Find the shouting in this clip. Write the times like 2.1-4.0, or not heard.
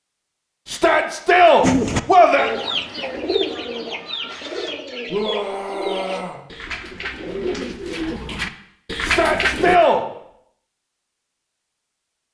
0.7-2.5, 5.1-6.4, 9.0-10.1.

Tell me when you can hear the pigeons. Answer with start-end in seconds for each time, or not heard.
1.6-9.8.